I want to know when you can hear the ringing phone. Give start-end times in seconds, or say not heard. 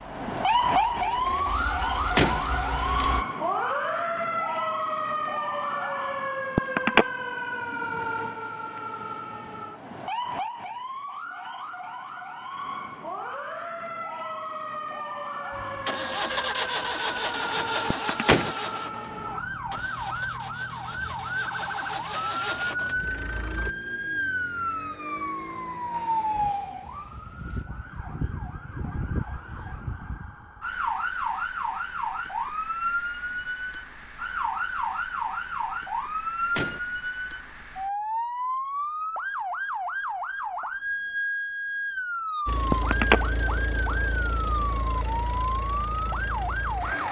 6.5-7.0, 17.9-18.4, 42.7-43.2.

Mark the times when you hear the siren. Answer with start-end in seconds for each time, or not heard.
0.0-47.0.